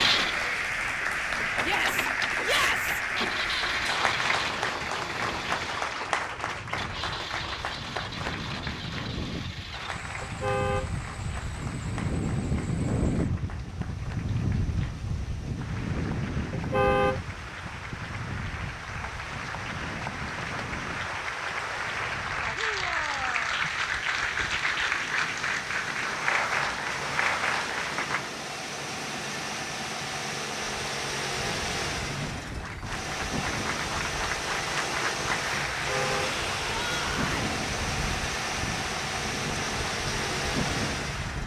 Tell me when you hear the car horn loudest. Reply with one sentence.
The volume of the car horn peaks at 17 seconds.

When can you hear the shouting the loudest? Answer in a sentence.
The volume of the shouting peaks at 3 seconds.